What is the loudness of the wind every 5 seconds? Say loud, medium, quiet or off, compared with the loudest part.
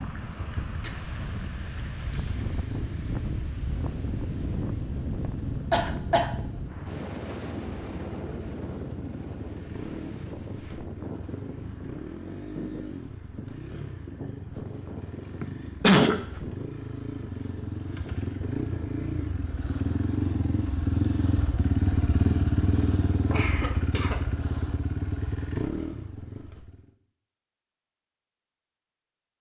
loud, loud, medium, medium, off, off.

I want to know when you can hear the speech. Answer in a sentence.
You can't hear the speech here.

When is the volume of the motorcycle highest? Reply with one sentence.
The volume of the motorcycle peaks at 22 seconds.